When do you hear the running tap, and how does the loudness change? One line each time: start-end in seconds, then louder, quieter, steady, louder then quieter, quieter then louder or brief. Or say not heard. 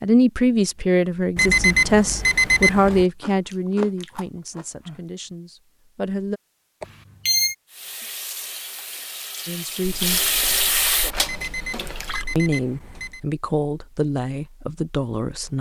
7.7-12.2 louder then quieter.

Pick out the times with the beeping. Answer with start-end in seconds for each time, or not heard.
1.4-3.0, 6.8-7.5, 11.2-13.2.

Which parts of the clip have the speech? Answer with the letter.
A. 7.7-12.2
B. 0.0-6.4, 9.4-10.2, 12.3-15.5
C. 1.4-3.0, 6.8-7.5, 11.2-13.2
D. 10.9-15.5
B.